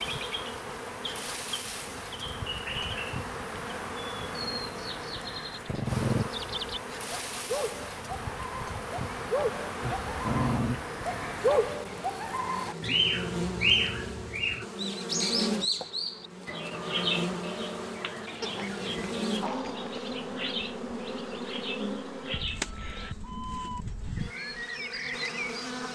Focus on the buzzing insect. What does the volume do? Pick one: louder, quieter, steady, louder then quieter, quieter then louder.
steady.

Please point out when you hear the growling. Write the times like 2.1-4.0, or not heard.
5.7-6.3, 9.8-10.8, 18.4-20.1.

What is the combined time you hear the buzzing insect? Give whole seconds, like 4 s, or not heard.
26 s.